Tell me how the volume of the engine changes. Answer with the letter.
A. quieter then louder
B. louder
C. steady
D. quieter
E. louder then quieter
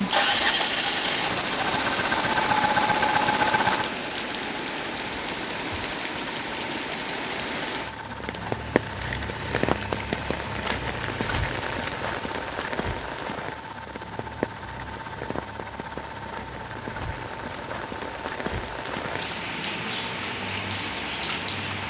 D.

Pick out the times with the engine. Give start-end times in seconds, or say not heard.
0.0-21.8.